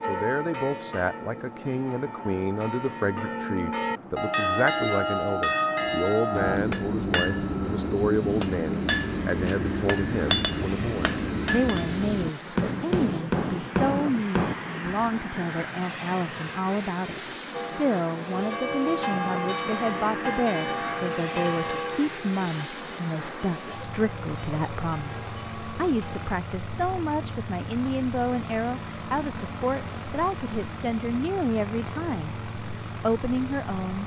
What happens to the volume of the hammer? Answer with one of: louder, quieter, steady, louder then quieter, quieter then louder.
steady.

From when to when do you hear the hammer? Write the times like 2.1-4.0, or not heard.
5.8-15.2.